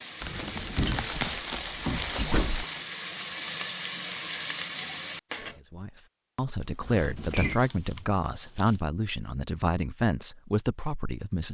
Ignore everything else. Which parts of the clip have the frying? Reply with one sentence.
You can hear the frying from 0.0 to 5.6 s.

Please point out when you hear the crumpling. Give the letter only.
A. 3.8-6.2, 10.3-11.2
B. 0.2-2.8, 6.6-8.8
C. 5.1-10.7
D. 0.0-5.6
B.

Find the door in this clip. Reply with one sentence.
You can hear the door from 0.2 to 2.6 s and from 6.8 to 7.6 s.